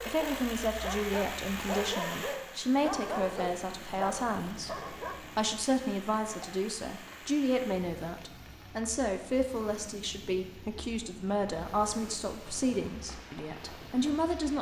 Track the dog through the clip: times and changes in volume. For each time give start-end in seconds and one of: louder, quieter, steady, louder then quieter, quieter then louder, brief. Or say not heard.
0.0-5.2 steady.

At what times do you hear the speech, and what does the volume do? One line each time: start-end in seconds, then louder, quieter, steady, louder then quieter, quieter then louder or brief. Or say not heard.
0.1-14.5 steady.